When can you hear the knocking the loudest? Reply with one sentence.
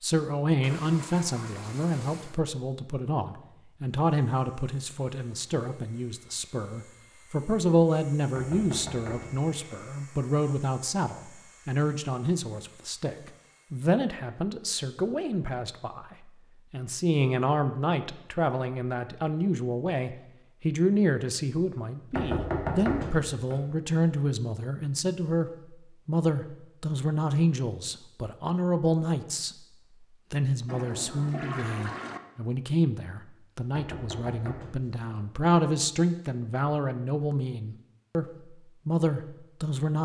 The volume of the knocking peaks at 23 seconds.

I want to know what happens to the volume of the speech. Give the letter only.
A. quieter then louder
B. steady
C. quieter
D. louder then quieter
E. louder
B.